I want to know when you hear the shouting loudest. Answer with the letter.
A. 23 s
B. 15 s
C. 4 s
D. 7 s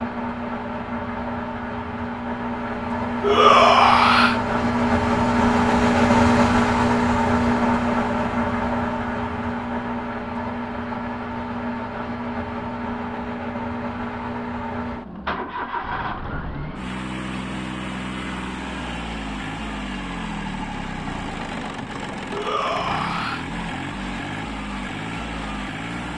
C.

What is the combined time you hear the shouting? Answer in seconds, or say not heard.
2 s.